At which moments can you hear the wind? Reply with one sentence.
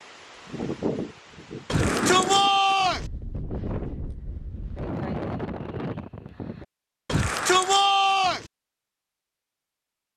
You can hear the wind from 0.0 to 6.7 s.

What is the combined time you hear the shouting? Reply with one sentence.
The shouting can be heard for 3 seconds in total.